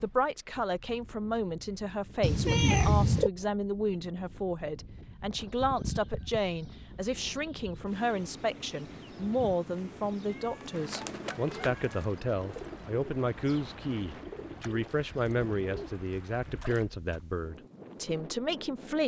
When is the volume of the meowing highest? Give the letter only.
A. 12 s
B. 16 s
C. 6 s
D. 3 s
D.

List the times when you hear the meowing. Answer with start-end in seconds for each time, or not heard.
2.2-3.3, 10.6-12.0.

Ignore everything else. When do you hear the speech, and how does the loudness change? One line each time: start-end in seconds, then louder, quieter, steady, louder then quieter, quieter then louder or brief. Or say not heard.
0.0-19.0 steady.